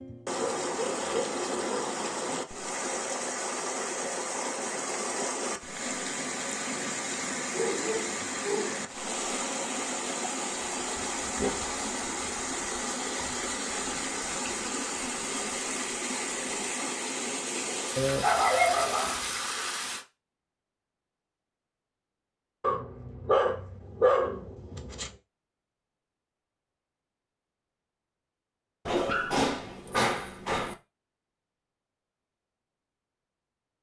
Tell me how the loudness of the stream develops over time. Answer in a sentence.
The volume of the stream stays about the same.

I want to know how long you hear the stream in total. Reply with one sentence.
The stream can be heard for 20 seconds in total.